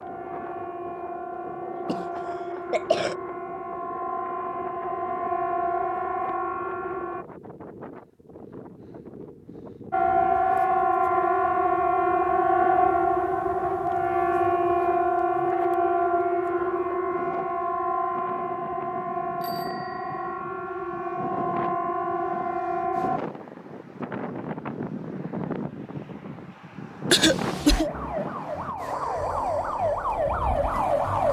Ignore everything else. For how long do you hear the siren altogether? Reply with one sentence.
You can hear the siren for 24 seconds altogether.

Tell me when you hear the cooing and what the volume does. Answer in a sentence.
You can't hear the cooing here.